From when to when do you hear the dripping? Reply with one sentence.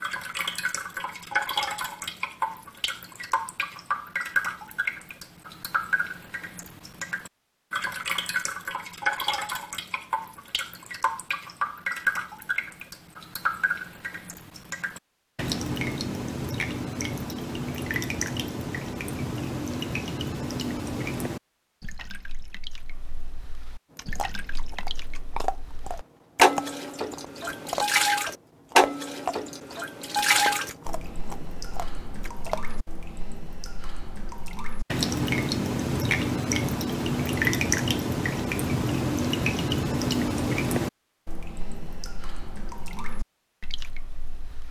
You can hear the dripping from 0.0 to 44.6 s.